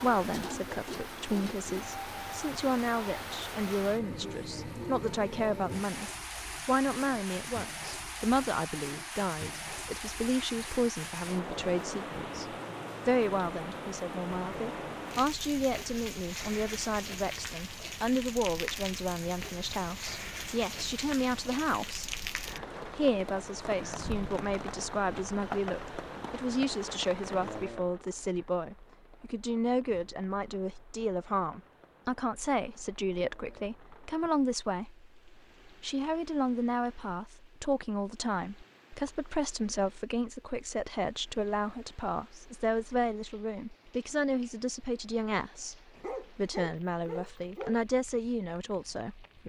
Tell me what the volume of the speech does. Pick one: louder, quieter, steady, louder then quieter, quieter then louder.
steady.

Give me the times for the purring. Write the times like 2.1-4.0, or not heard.
not heard.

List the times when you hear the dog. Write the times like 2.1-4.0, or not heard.
46.0-47.8.